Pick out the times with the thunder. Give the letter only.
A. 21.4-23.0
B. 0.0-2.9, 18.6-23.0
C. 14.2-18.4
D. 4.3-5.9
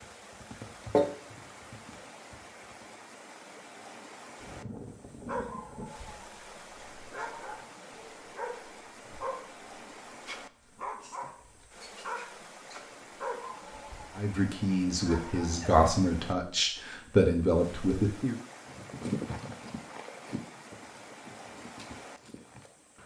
D.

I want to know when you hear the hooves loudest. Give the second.
1 s.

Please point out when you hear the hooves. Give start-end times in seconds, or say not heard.
0.0-2.9, 18.6-23.0.